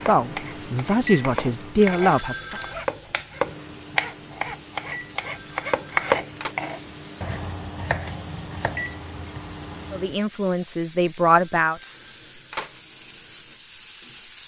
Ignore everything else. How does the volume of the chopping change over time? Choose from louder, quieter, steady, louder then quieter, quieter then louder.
louder then quieter.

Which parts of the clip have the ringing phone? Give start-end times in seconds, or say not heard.
1.8-2.9, 5.2-6.5, 11.4-12.8.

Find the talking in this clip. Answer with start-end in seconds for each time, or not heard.
0.0-2.5, 9.9-11.8.